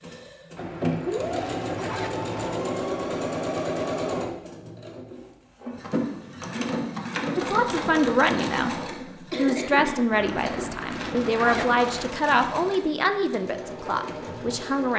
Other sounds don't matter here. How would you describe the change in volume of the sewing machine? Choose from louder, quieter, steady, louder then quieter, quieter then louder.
quieter.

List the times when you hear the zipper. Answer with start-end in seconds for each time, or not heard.
0.6-2.6, 10.1-12.2.